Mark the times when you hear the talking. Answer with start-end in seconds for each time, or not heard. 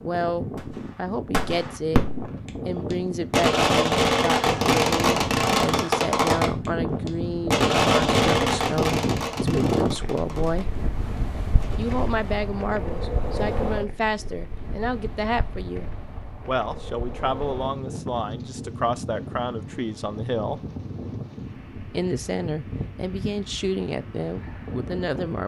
0.0-2.0, 2.6-10.7, 11.8-20.6, 21.8-25.4.